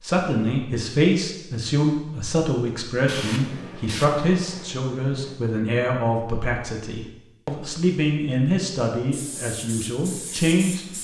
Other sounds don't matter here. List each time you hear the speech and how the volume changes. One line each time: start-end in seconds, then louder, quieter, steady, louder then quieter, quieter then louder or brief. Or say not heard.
0.0-10.9 steady.